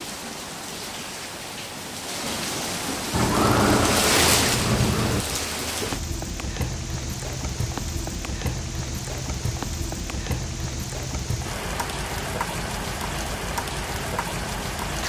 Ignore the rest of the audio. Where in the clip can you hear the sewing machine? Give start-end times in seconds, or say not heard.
3.1-5.2.